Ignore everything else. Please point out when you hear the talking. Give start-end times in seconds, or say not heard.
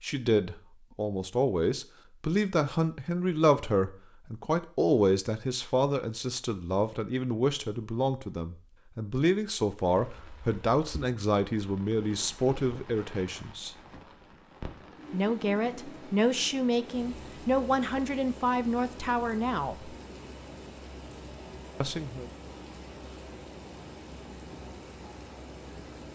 0.0-13.8, 15.1-19.9, 21.8-22.3.